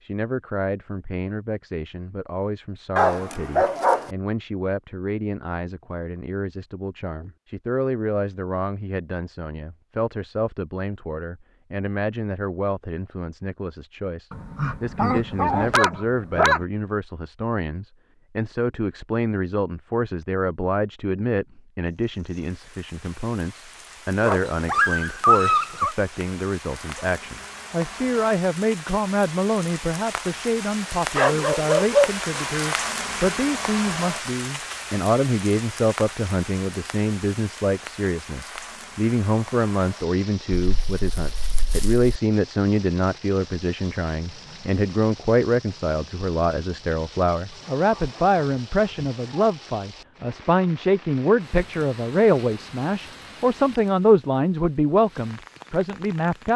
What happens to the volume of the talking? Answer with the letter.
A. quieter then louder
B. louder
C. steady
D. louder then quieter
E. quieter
B.